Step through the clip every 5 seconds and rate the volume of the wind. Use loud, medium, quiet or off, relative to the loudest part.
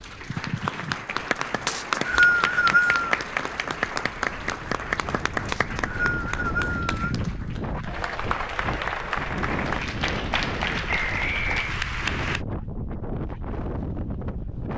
quiet, loud, loud.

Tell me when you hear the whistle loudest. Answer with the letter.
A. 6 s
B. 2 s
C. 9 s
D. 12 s
B.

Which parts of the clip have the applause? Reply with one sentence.
You can hear the applause from 0.0 to 12.4 s.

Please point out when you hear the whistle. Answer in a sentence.
The whistle can be heard from 1.6 to 3.1 s, from 5.5 to 7.0 s and from 11.1 to 11.8 s.